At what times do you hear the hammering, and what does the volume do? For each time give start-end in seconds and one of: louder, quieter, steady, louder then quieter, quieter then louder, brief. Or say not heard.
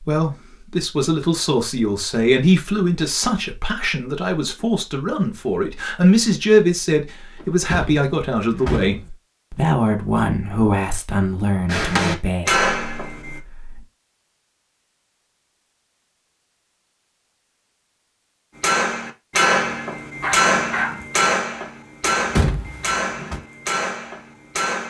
11.7-13.4 brief
18.6-24.8 quieter.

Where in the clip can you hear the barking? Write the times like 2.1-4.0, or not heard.
20.2-21.1.